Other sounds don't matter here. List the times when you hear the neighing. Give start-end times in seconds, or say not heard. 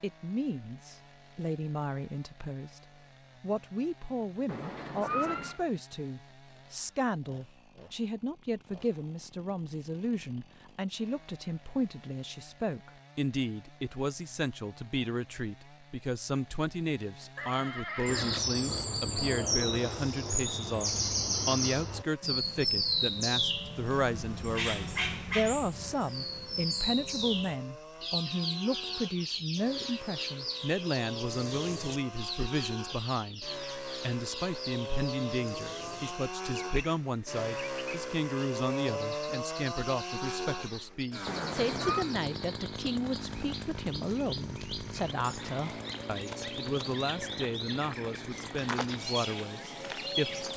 4.5-5.6, 17.4-18.6, 41.2-42.1.